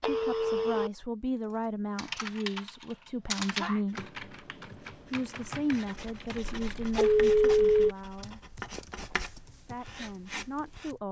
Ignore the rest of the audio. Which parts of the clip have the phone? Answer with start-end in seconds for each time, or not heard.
0.0-0.9, 6.6-7.9.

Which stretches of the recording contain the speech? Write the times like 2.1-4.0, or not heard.
0.0-4.1, 5.1-8.4, 9.6-11.0.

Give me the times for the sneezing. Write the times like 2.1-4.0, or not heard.
3.0-3.9, 8.6-9.2.